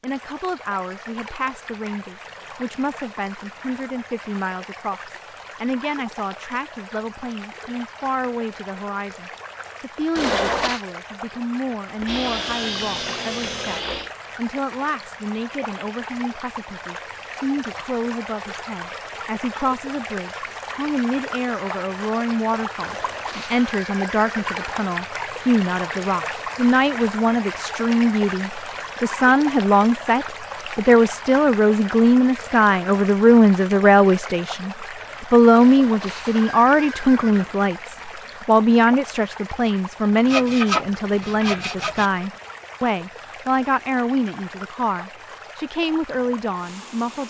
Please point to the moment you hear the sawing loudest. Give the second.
41 s.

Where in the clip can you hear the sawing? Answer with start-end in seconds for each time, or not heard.
12.0-14.1, 40.2-42.1.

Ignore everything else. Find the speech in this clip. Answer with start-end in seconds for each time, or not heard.
0.0-47.2.